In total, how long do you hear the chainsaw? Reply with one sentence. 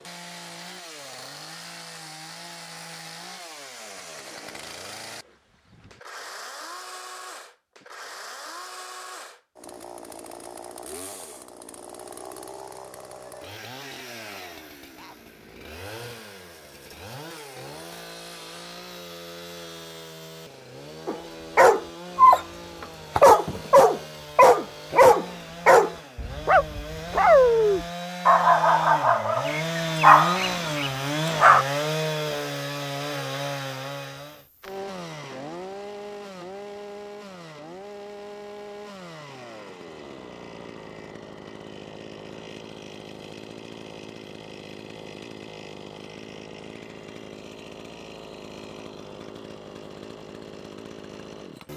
The chainsaw can be heard for 52 seconds in total.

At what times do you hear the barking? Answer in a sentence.
You can hear the barking from 21.1 to 31.6 s.